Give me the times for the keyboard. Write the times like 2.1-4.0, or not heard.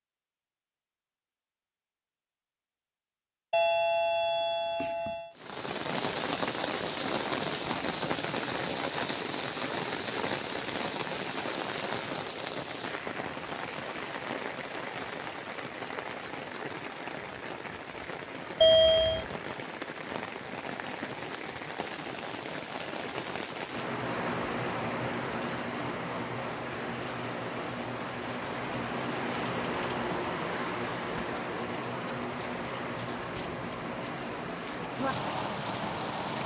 not heard.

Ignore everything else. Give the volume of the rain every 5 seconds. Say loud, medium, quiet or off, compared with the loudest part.
off, loud, loud, medium, loud, loud, loud, loud.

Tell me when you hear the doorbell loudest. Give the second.
19 s.